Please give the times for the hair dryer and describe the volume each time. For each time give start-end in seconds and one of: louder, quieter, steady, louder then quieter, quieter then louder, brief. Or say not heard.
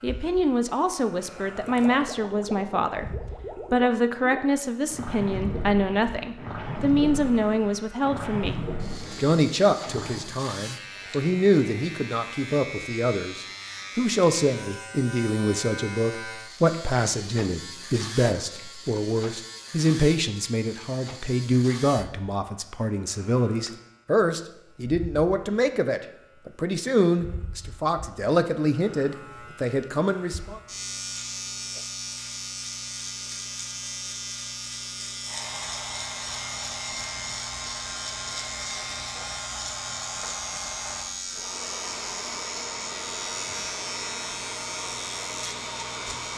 35.2-46.3 steady.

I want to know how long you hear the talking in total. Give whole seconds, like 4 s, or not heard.
30 s.